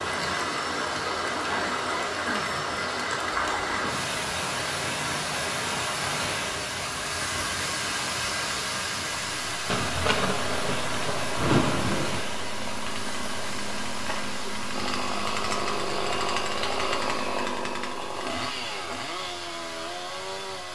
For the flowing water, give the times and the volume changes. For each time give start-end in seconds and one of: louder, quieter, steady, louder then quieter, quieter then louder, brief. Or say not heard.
0.0-20.6 quieter.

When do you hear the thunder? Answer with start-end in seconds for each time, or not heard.
9.7-12.2.